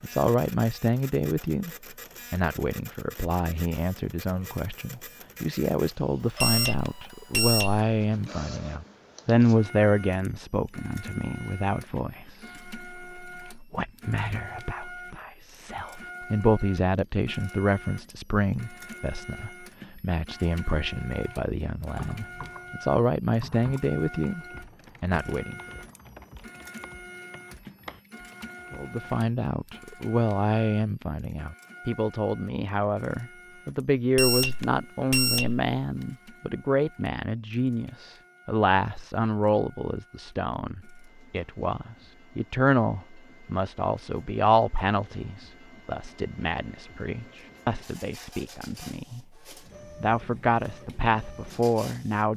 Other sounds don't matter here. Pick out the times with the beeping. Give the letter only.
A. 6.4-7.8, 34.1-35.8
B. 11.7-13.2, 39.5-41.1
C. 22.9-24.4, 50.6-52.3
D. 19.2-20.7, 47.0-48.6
A.